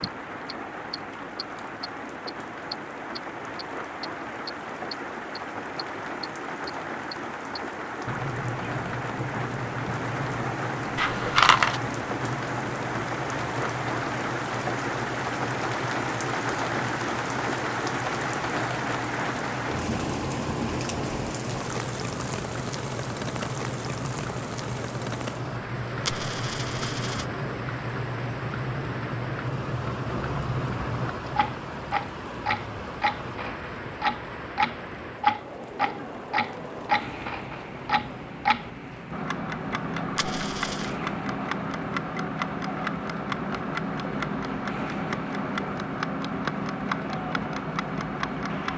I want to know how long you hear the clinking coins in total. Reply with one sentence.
You can hear the clinking coins for 3 seconds altogether.